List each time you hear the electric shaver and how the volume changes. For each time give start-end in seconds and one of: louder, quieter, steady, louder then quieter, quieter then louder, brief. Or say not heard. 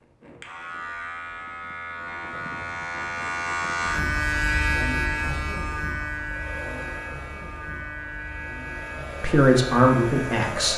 0.0-10.7 louder then quieter.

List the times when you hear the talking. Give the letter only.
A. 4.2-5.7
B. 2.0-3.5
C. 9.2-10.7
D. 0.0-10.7
C.